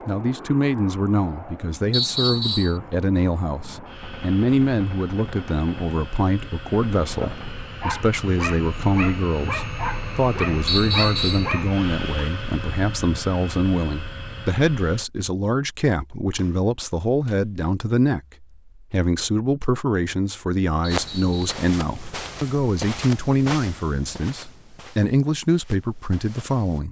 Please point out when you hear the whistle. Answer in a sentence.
The whistle can be heard from 1.9 to 2.8 s, from 10.7 to 11.5 s and from 20.9 to 21.5 s.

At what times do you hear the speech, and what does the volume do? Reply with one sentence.
The speech can be heard from 0.1 to 26.8 s, at a steady volume.